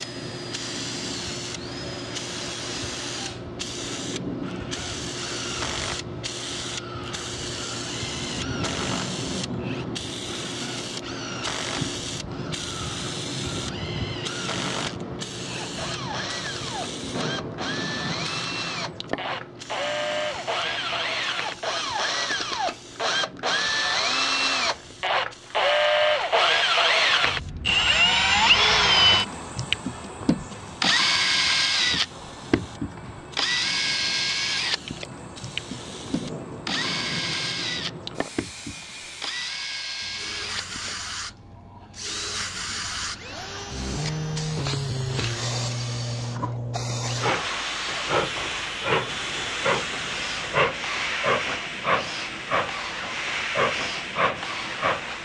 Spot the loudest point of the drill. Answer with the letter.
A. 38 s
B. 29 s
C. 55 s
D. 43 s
B.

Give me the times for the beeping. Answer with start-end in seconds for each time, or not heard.
not heard.